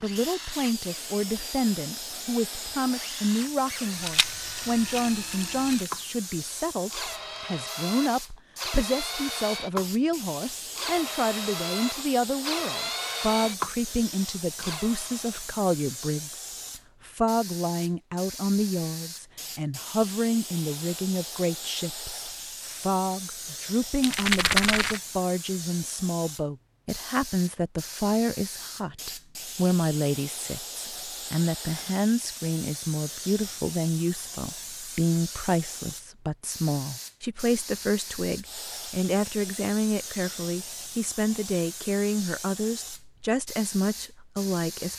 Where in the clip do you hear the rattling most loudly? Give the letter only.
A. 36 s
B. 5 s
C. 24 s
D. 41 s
C.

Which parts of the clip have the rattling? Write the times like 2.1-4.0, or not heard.
4.0-5.9, 24.0-25.0.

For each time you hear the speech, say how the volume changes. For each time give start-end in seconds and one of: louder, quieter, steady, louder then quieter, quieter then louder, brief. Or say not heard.
0.0-16.4 steady
17.1-44.9 steady.